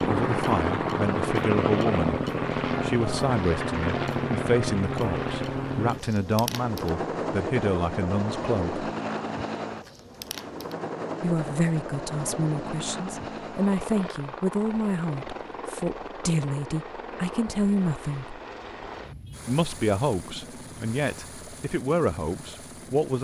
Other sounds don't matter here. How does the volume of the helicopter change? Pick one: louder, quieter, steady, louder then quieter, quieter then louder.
quieter.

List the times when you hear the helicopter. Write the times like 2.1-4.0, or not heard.
0.0-23.1.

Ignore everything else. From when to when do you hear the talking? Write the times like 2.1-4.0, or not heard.
0.0-8.8, 11.2-18.4, 19.4-23.1.